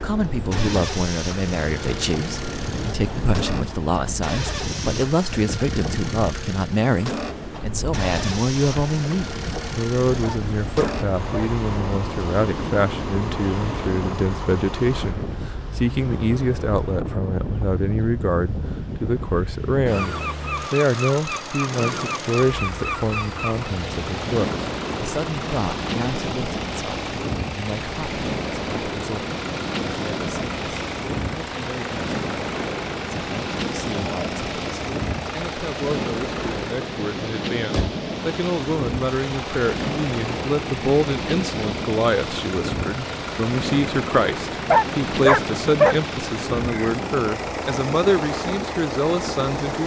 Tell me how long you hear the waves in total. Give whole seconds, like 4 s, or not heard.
50 s.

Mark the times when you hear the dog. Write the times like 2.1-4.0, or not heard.
10.2-11.5, 44.7-46.0.